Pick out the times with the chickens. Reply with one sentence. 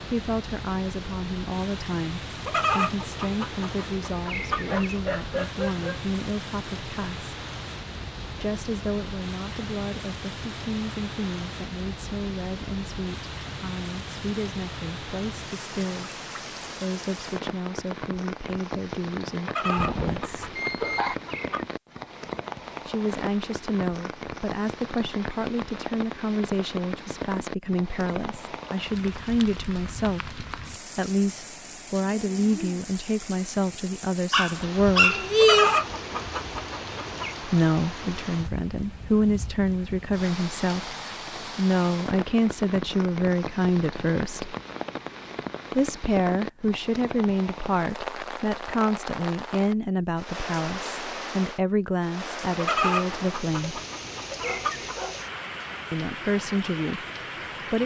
The chickens can be heard from 2.5 to 5.0 s, from 19.4 to 21.6 s, from 35.4 to 37.4 s and from 52.5 to 55.0 s.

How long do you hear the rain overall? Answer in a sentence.
The rain can be heard for 58 seconds in total.